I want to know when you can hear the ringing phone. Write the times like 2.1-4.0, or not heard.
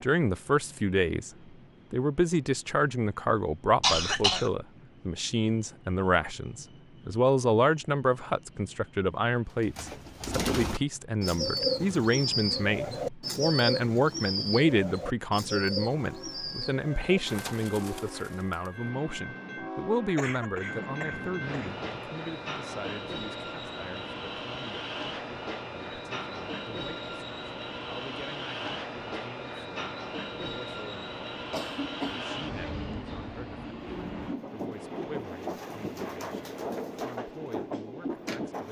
not heard.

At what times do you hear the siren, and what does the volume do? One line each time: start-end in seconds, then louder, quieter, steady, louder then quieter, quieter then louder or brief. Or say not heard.
not heard.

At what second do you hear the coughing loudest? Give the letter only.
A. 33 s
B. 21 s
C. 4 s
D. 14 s
C.